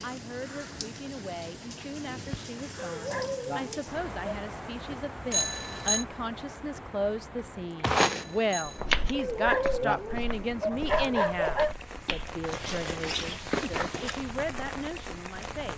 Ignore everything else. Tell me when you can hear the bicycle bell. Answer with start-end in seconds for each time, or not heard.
5.3-6.0, 8.1-8.8.